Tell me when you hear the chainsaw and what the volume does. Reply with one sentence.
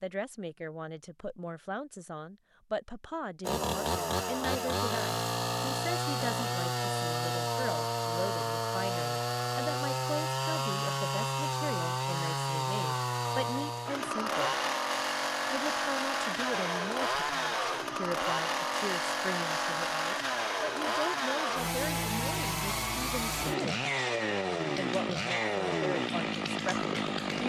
You can hear the chainsaw from 3.4 to 27.4 s, at a steady volume.